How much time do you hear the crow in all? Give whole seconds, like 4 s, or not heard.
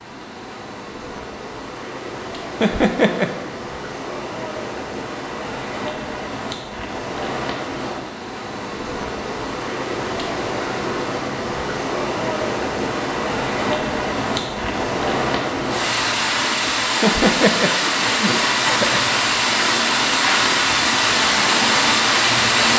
not heard.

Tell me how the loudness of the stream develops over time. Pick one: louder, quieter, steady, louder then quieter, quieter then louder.
louder.